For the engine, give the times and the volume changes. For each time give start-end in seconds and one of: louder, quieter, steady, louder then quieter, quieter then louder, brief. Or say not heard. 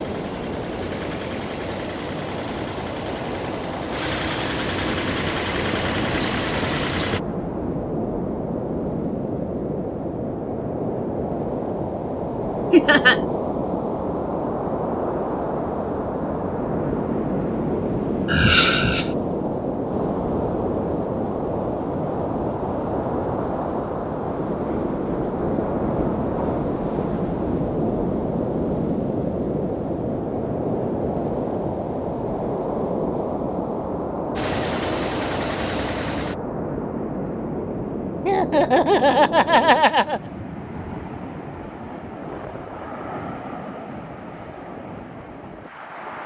0.0-7.2 louder
34.4-36.4 brief.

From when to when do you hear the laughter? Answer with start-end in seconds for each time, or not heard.
12.7-13.2, 18.2-19.1, 38.2-40.2.